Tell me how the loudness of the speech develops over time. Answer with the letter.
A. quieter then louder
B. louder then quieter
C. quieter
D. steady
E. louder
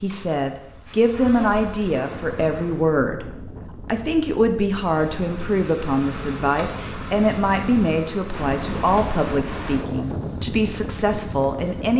D.